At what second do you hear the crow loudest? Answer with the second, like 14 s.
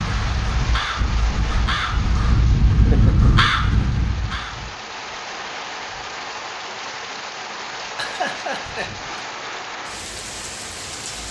3 s.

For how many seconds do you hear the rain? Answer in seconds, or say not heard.
11 s.